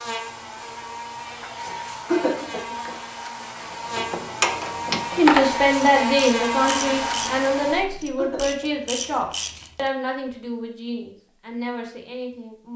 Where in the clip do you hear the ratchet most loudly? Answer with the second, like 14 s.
5 s.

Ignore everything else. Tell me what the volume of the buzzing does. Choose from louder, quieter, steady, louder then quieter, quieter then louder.
louder.